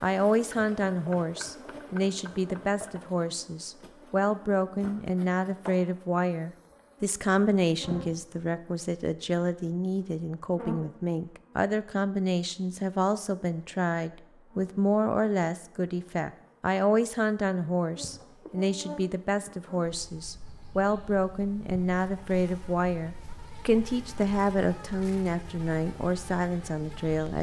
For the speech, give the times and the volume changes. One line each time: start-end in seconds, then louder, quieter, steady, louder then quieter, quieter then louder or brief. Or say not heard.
0.0-27.3 steady.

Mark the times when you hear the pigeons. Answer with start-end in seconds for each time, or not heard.
not heard.